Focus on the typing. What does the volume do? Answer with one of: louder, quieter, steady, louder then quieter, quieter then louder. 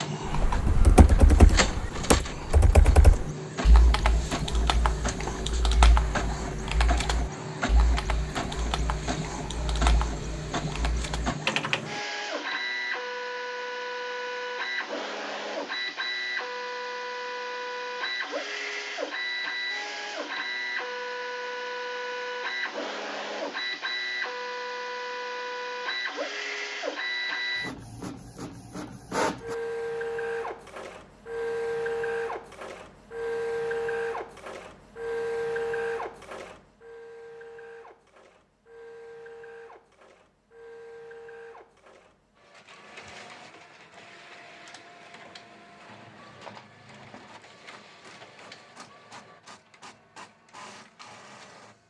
quieter then louder.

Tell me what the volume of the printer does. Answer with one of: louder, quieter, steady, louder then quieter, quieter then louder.
quieter.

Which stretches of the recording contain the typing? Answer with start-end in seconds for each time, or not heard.
0.2-12.0.